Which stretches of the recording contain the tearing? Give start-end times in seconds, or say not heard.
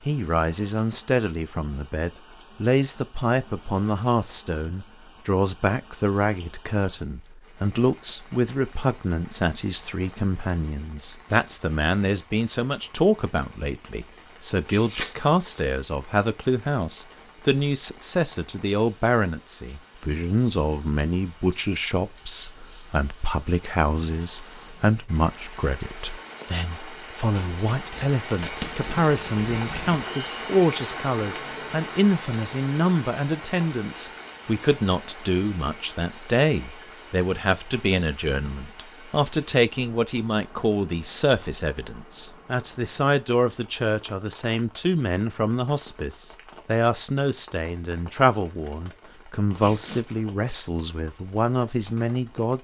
14.7-15.6, 27.3-30.1, 49.6-50.2.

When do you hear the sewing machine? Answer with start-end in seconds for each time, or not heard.
not heard.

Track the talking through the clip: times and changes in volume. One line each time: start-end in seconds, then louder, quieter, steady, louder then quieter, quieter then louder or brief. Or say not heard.
0.1-52.5 steady.